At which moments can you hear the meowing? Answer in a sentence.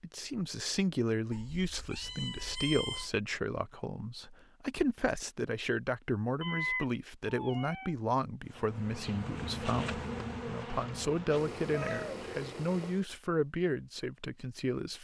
You can hear the meowing from 1.3 to 3.1 s, from 6.4 to 8.0 s and from 11.3 to 13.1 s.